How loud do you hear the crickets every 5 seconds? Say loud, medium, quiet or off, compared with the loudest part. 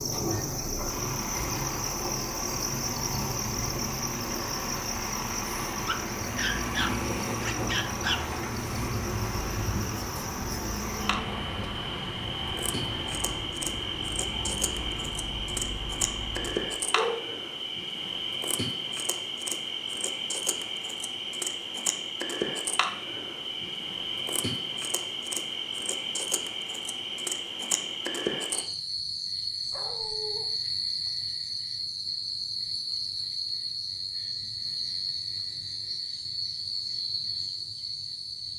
loud, medium, loud, loud, loud, loud, loud, loud.